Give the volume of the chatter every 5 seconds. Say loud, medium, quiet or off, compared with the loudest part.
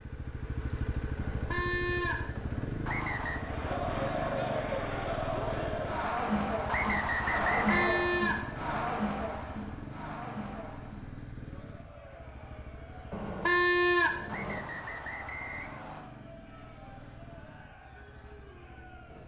loud, loud, quiet, quiet.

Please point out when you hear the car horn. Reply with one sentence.
You can hear the car horn from 1.1 to 2.6 s, from 7.4 to 8.3 s and from 13.1 to 14.6 s.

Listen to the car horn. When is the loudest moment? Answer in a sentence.
The volume of the car horn peaks at 14 seconds.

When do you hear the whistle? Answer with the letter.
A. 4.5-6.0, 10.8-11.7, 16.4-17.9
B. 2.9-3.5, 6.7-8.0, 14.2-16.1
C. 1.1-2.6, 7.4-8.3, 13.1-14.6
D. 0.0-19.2
B.